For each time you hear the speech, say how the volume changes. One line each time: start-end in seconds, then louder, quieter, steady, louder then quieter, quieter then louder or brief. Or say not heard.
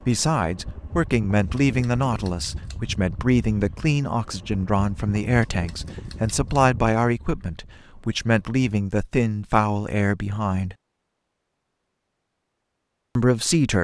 0.1-10.8 steady
13.2-13.8 brief.